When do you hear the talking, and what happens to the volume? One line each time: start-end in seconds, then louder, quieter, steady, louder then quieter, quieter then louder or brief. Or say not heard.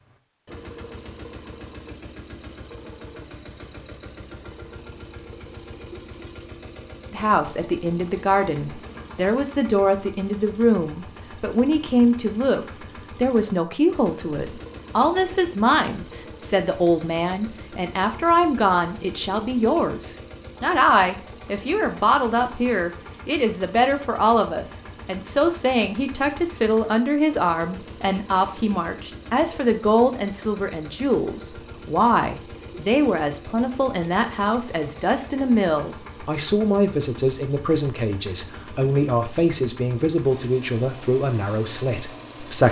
7.1-42.6 steady.